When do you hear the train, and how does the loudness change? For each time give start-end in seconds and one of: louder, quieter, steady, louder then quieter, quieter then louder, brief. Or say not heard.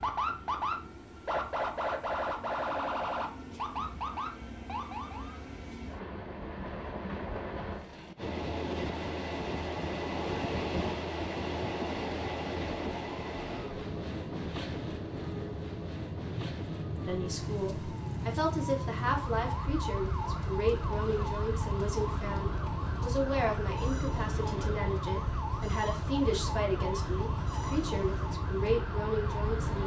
0.0-29.8 louder then quieter.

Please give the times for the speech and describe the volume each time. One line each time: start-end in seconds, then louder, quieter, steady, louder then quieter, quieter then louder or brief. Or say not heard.
17.1-29.8 steady.